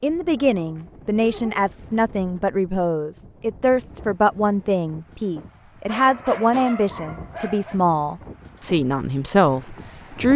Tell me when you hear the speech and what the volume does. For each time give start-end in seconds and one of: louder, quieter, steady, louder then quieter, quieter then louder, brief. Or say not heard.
0.0-10.3 steady.